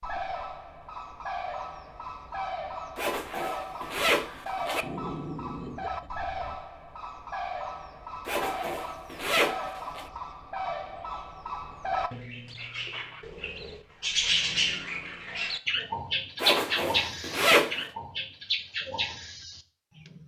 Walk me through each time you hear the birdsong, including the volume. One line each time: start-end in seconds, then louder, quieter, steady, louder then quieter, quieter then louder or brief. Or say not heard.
0.0-20.2 louder.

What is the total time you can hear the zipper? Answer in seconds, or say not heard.
5 s.